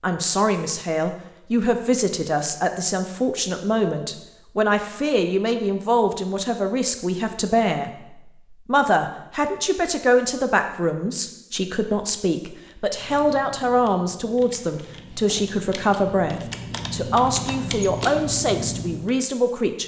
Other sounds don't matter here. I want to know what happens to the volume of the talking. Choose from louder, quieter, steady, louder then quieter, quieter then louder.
steady.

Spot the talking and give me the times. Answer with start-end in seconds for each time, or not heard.
0.0-19.8.